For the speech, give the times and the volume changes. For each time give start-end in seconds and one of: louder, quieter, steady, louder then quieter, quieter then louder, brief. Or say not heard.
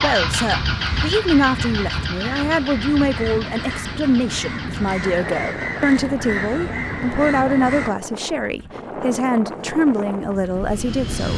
0.0-11.3 steady.